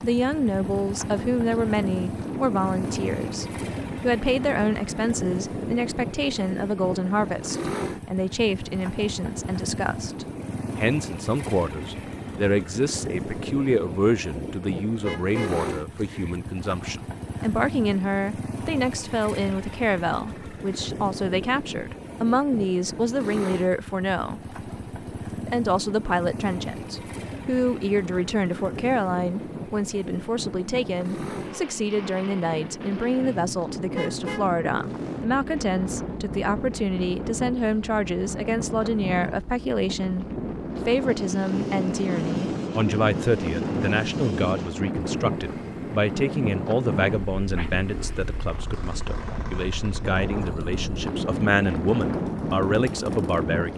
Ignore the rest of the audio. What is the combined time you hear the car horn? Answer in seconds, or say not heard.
2 s.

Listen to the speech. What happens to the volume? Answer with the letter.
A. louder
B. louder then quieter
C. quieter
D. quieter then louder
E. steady
E.